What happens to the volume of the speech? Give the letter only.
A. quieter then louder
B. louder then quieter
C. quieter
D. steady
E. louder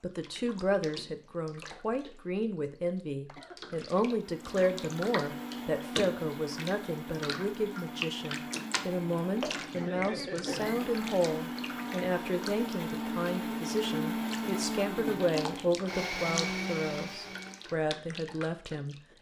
D.